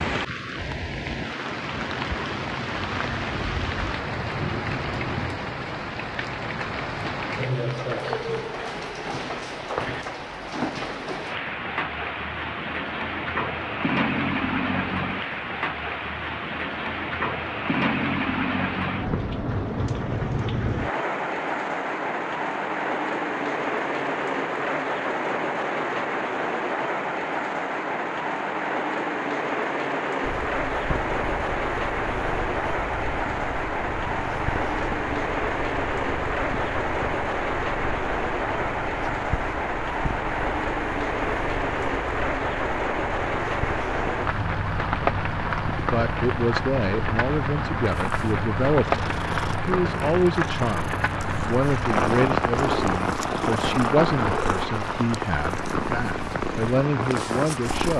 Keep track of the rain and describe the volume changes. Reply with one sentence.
The volume of the rain stays about the same.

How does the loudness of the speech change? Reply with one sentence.
The volume of the speech stays about the same.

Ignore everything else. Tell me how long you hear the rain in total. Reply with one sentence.
You can hear the rain for 58 seconds altogether.